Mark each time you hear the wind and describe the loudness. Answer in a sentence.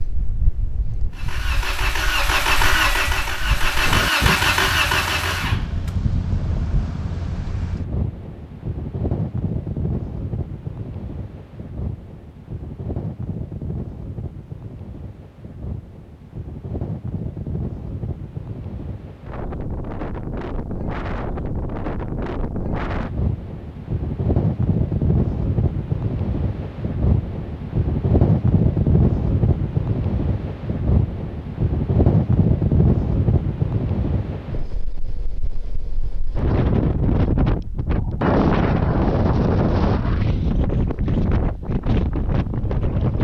The wind can be heard from 0.0 to 43.1 s, getting louder.